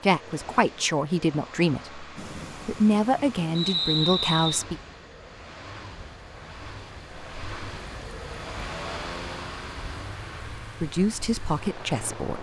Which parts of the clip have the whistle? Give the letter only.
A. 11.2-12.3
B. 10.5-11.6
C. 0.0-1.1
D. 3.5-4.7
D.